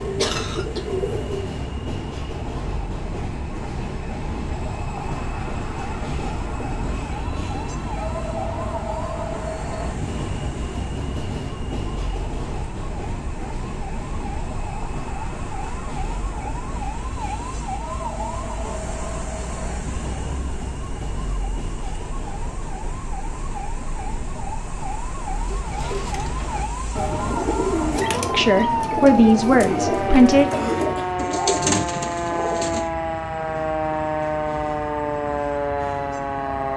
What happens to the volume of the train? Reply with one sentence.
The volume of the train goes down.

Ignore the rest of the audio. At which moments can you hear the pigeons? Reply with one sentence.
You can hear the pigeons from 0.0 to 1.4 s and from 25.4 to 32.9 s.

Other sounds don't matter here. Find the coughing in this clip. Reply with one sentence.
The coughing can be heard from 0.1 to 0.8 s and from 30.4 to 31.2 s.